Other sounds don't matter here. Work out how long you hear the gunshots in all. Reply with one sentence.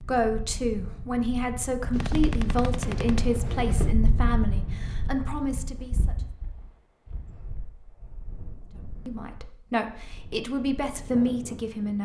The gunshots can be heard for 2 seconds in total.